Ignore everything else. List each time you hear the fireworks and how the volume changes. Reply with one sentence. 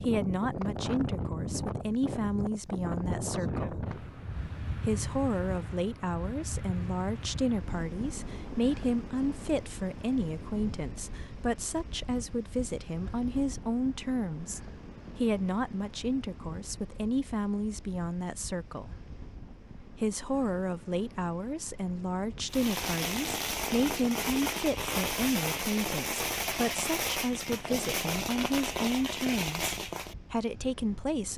You can hear the fireworks from 22.5 to 30.1 s, at a steady volume.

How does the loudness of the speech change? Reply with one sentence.
The loudness of the speech stays about the same.